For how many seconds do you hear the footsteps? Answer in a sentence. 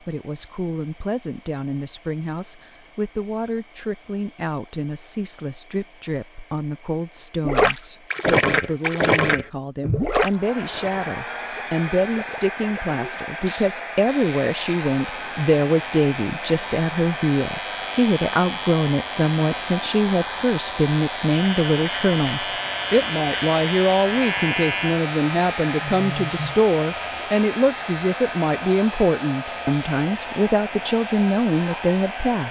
You can't hear the footsteps here.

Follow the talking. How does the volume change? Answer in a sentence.
The volume of the talking goes up.